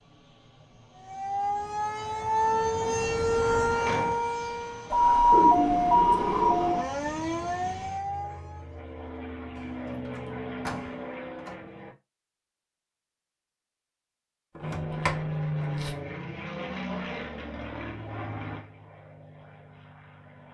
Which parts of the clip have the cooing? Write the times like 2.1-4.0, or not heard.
5.3-6.8.